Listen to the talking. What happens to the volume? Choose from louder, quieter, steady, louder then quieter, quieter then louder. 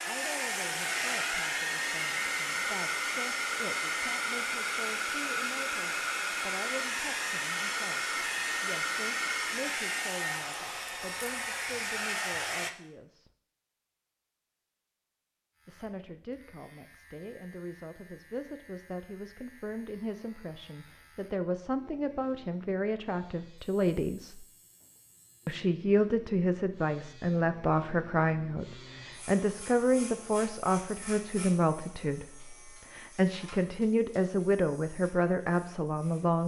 louder.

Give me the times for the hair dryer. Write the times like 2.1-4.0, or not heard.
0.0-12.7.